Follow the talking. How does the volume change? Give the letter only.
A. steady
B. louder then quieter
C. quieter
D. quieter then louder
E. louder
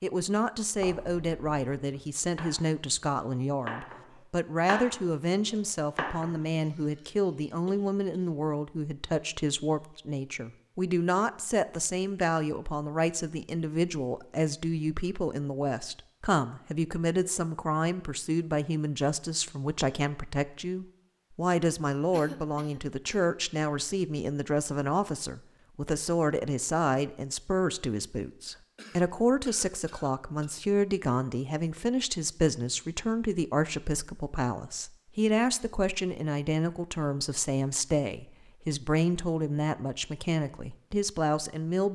A.